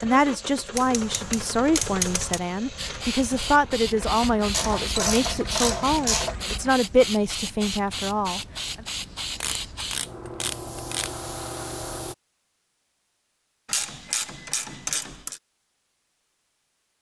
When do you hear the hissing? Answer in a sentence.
The hissing can be heard from 2.8 to 12.2 s.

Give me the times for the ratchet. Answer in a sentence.
The ratchet can be heard from 0.7 to 2.4 s, from 4.5 to 6.3 s, from 9.4 to 11.2 s and from 13.7 to 15.4 s.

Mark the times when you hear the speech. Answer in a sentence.
The speech can be heard from 0.0 to 8.4 s.